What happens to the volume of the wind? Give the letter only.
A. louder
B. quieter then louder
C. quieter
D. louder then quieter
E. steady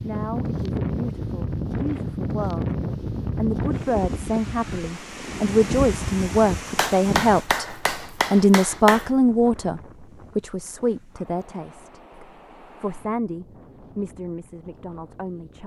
C.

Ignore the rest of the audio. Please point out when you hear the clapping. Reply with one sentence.
The clapping can be heard from 6.8 to 9.1 s.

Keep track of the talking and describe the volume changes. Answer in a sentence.
The volume of the talking goes up, then down.